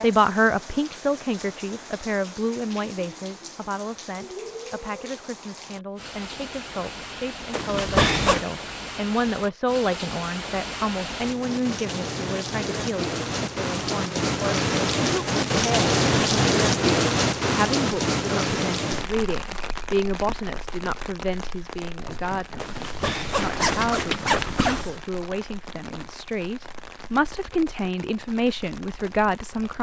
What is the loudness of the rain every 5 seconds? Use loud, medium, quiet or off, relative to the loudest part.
quiet, quiet, medium, loud, quiet, quiet.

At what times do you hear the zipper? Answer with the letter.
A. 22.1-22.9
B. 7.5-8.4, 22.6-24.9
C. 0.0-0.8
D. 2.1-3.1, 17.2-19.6
B.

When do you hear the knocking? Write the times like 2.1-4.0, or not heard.
22.1-22.9.